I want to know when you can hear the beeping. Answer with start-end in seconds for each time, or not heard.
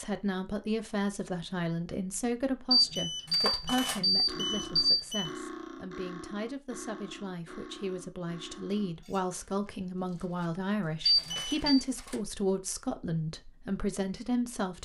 2.7-5.3, 11.1-11.8.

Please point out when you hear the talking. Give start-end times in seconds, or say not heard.
0.0-14.8.